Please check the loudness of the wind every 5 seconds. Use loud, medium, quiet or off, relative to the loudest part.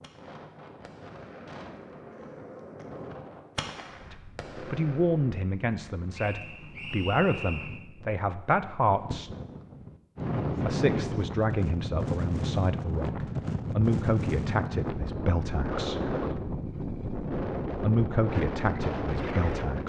quiet, quiet, loud, loud.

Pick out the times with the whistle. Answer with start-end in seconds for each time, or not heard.
6.1-7.8.